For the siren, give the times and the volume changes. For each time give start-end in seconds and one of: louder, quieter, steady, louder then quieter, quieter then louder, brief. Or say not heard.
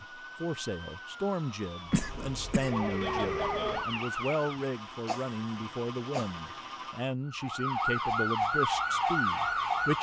0.0-4.7 louder
7.2-9.9 brief.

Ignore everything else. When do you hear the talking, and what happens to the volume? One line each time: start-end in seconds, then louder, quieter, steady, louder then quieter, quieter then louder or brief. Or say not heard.
0.0-9.9 steady.